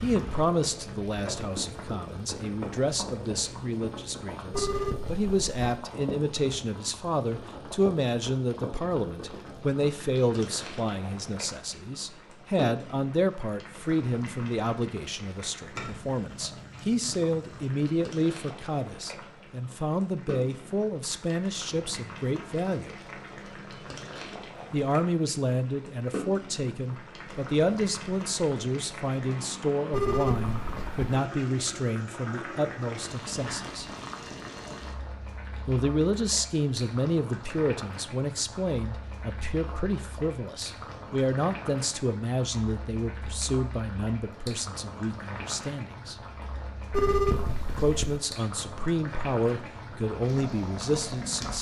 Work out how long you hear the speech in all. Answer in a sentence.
You can hear the speech for 46 seconds altogether.